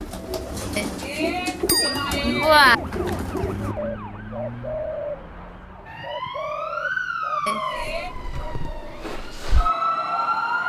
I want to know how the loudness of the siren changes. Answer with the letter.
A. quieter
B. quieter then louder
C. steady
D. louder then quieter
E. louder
E.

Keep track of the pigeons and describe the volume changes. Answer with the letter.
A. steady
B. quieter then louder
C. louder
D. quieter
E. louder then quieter
D.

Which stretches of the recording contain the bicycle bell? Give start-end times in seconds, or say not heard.
0.8-2.8, 7.5-8.2.